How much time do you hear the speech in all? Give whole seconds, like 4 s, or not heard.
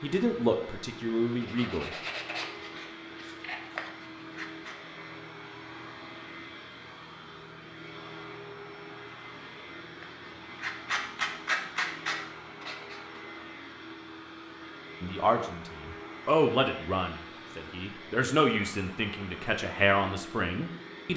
8 s.